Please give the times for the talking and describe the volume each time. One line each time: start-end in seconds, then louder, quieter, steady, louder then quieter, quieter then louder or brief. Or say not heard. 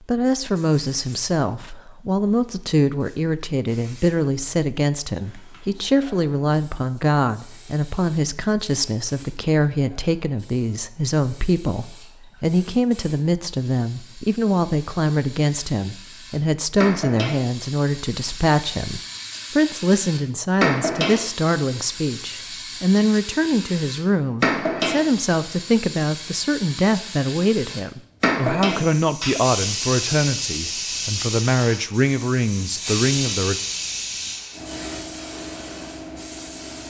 0.1-33.6 steady.